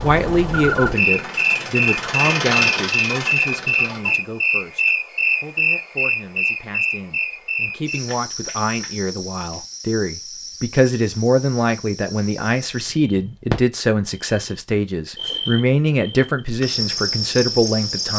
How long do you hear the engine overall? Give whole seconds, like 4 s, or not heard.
4 s.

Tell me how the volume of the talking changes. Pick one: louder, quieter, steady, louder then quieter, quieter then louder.
quieter then louder.